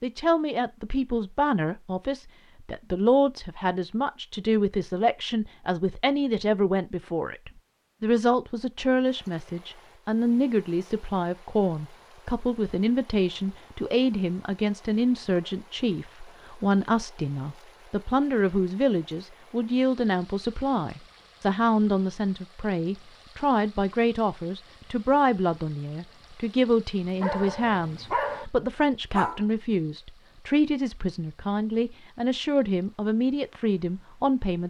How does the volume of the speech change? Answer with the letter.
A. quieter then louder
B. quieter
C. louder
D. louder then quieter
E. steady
E.